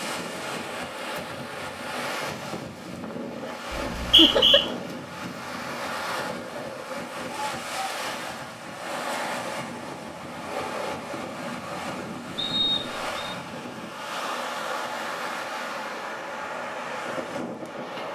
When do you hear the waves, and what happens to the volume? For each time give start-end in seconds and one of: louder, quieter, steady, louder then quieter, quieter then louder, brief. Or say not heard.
0.0-18.1 steady.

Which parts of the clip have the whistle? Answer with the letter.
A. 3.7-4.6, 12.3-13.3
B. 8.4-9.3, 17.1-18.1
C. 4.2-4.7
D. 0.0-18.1
A.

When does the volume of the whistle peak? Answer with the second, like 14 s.
4 s.